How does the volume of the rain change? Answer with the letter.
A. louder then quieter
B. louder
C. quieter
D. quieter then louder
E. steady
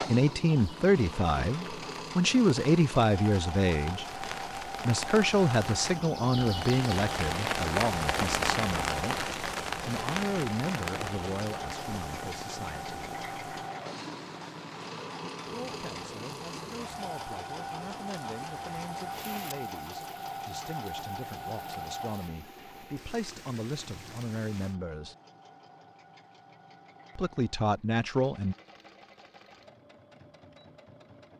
A.